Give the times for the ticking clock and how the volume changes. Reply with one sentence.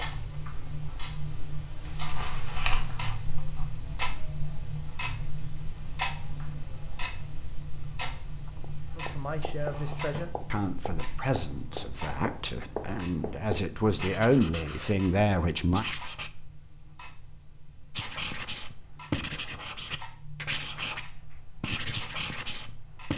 You can hear the ticking clock from 0.0 to 23.1 s, getting quieter.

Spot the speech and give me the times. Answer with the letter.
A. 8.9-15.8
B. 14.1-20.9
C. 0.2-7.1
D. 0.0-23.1
A.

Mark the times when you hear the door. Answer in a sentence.
The door can't be heard in this clip.